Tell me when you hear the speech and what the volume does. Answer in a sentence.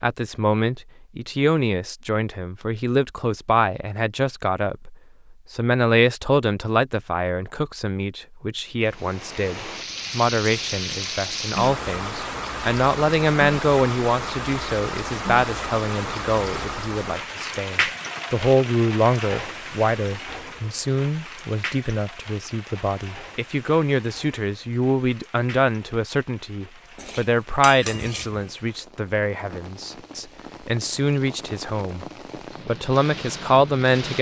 The speech can be heard from 0.0 to 32.0 s, at a steady volume; and briefly from 32.6 to 34.1 s.